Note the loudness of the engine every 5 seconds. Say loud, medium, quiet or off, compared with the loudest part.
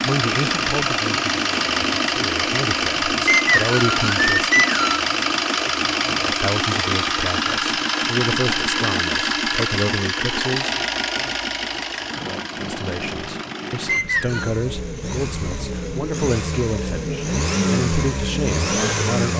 loud, loud, medium, loud.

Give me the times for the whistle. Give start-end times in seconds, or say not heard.
3.2-5.0, 13.8-14.5.